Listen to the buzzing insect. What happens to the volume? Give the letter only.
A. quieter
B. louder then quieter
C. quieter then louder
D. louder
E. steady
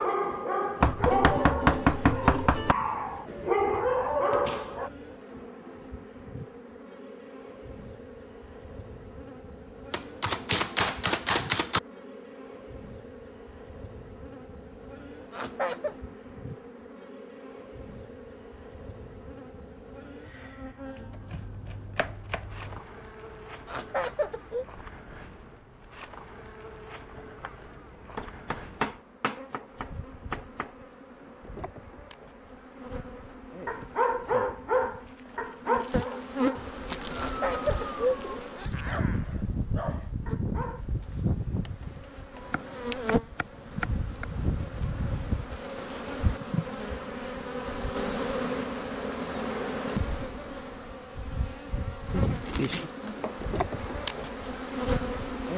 D.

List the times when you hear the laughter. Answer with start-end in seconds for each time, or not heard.
15.3-15.9, 23.6-24.6, 37.1-38.9.